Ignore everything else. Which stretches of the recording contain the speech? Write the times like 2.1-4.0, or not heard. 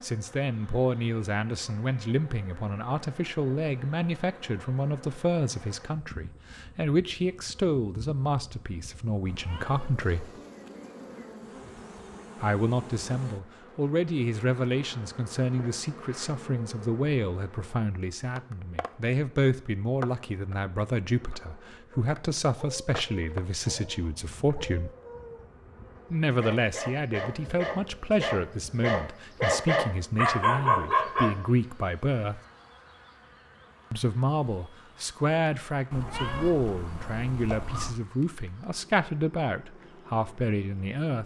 0.0-10.2, 12.4-24.9, 26.1-32.4, 33.9-41.2.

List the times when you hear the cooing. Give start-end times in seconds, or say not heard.
not heard.